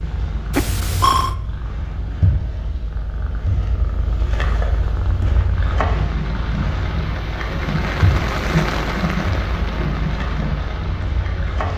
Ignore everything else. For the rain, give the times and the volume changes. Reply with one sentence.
You can hear the rain from 5.5 to 11.7 s, getting louder then quieter.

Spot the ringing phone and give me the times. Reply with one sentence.
You can hear the ringing phone from 0.5 to 1.4 s.